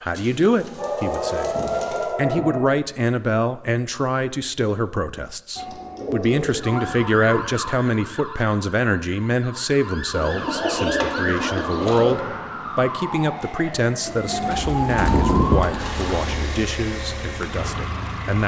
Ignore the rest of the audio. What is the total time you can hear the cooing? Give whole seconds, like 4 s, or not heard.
8 s.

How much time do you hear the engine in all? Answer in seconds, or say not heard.
3 s.